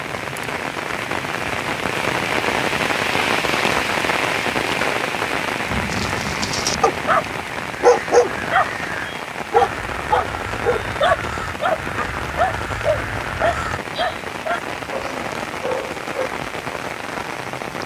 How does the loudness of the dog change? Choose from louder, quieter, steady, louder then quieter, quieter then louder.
quieter.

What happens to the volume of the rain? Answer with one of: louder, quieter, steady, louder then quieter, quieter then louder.
quieter.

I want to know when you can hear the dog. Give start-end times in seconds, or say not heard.
5.9-16.3.